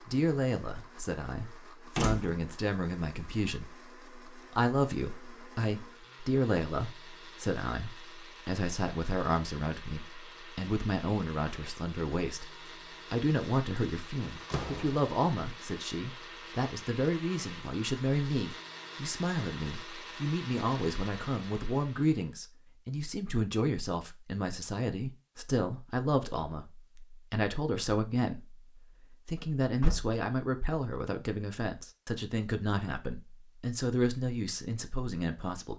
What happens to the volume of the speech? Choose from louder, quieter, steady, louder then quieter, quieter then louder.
steady.